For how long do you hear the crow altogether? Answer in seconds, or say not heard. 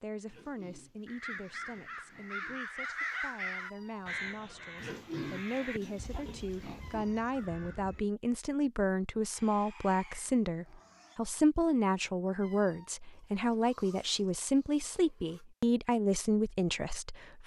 7 s.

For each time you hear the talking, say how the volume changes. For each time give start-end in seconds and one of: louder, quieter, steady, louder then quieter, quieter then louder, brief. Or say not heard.
0.0-17.4 louder.